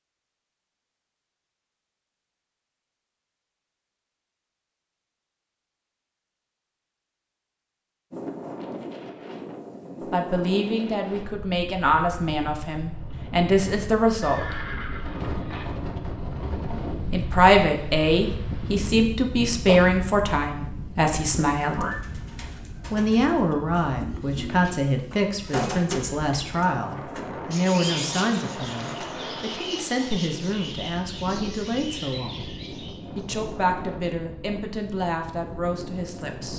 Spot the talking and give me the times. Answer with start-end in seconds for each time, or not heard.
10.1-14.6, 17.1-21.9, 22.9-32.5, 33.1-36.5.